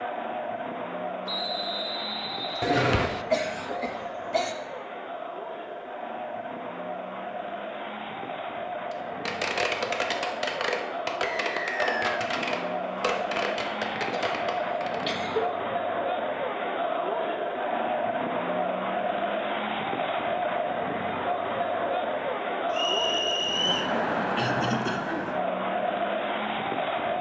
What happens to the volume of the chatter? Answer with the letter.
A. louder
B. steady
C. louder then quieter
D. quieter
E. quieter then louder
A.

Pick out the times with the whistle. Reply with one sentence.
The whistle can be heard from 1.2 to 3.2 s, from 11.2 to 12.2 s and from 22.7 to 23.9 s.